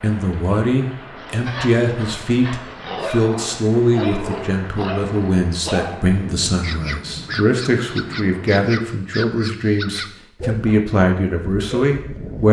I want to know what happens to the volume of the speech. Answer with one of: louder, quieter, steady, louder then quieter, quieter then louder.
steady.